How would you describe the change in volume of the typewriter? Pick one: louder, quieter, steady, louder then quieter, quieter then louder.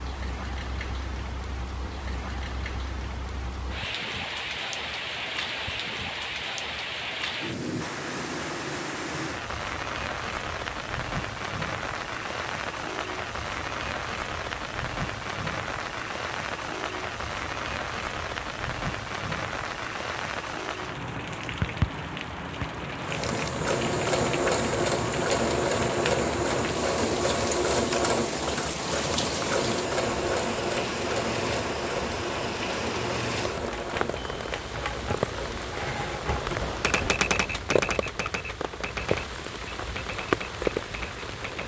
louder then quieter.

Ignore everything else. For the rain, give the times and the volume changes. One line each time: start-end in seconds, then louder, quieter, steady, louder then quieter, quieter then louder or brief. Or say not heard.
0.0-41.6 steady.